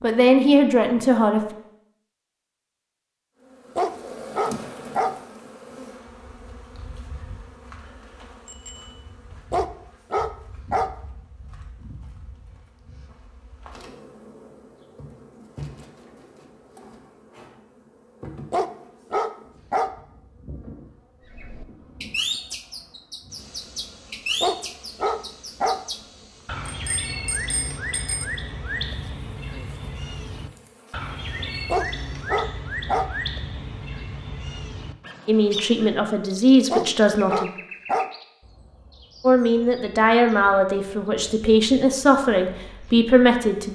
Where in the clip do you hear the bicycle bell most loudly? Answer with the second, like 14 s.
28 s.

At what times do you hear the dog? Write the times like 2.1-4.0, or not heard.
3.8-5.2, 9.5-10.9, 18.5-19.9, 24.4-25.8, 31.7-33.1, 36.7-38.1.